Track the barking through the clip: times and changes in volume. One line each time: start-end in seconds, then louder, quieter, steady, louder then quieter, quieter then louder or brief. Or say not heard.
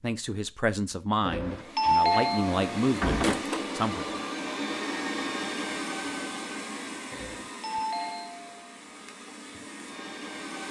not heard.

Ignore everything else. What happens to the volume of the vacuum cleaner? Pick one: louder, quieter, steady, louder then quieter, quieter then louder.
quieter.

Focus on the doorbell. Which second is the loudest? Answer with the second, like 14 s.
2 s.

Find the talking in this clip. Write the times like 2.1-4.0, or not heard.
0.0-4.2.